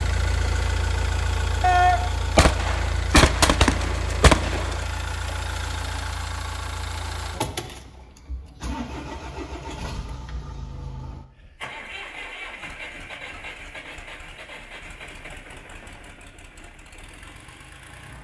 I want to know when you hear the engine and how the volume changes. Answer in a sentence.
You can hear the engine from 0.0 to 18.1 s, getting quieter.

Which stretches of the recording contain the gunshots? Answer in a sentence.
The gunshots can be heard from 1.6 to 4.8 s.